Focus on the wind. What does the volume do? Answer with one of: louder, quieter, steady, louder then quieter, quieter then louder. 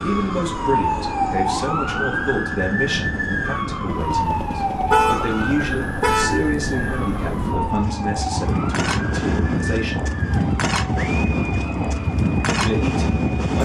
louder.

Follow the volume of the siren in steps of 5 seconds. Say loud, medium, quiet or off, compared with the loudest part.
loud, medium, medium.